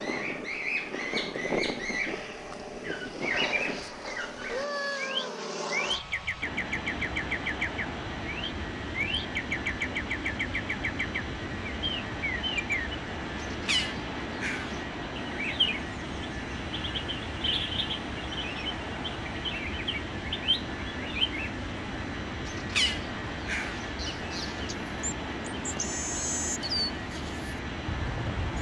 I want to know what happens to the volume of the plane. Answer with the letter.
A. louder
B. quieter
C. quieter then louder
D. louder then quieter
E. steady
E.